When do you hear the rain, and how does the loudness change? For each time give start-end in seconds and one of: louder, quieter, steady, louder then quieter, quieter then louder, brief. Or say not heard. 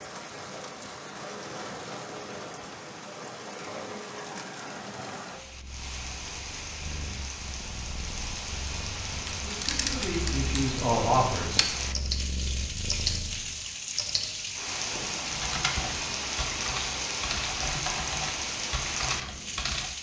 0.0-19.9 louder.